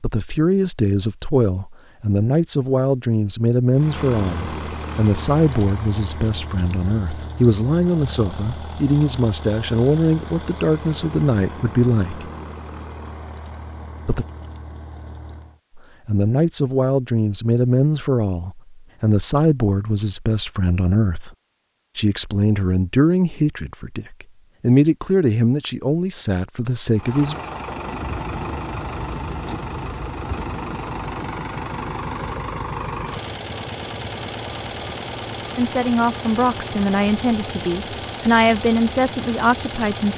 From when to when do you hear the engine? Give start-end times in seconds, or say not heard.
3.7-15.6, 26.9-40.1.